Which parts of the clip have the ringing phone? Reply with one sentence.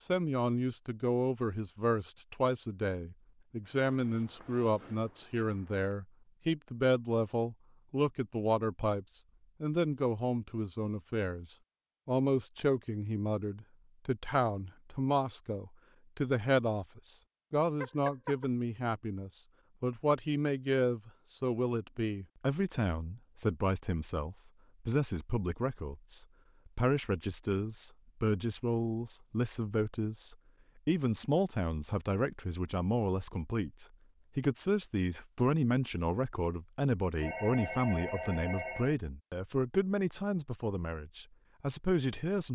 You can hear the ringing phone from 17.8 to 18.4 s and from 37.2 to 39.0 s.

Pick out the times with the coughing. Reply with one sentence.
The coughing can't be heard in this clip.